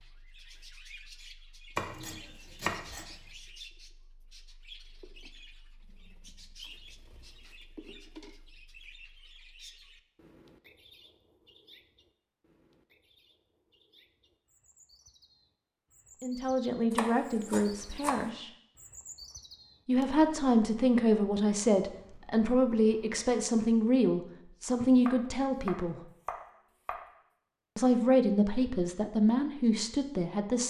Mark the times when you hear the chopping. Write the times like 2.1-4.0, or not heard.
1.8-3.0, 16.9-18.3, 25.1-27.1.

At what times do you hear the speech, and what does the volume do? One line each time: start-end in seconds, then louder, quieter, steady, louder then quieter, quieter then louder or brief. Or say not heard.
16.2-18.5 brief
19.9-26.0 steady
27.8-30.6 brief.